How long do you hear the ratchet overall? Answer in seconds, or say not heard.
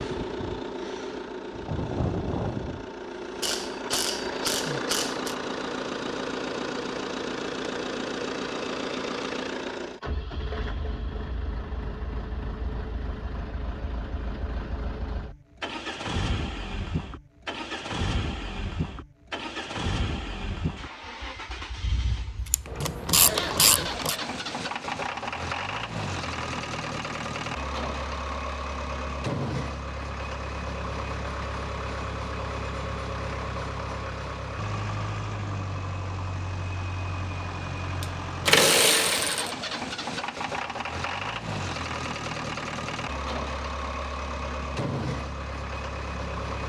5 s.